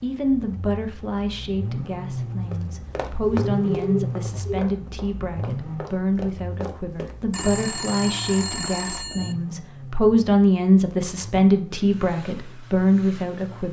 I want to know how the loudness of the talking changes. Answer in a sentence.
The volume of the talking goes up.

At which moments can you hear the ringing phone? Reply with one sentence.
You can hear the ringing phone from 3.2 to 4.7 s and from 7.3 to 9.3 s.